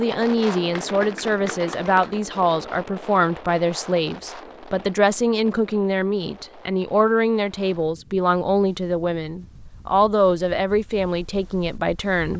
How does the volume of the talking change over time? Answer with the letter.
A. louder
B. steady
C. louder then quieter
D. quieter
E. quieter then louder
B.